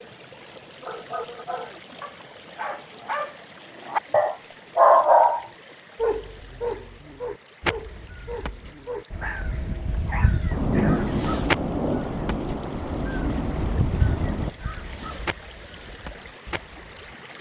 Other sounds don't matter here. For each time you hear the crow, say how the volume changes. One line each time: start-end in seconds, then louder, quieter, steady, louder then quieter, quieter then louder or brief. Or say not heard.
7.6-17.1 louder then quieter.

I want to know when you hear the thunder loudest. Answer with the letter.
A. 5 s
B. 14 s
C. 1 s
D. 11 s
D.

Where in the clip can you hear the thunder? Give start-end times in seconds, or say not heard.
10.5-14.5.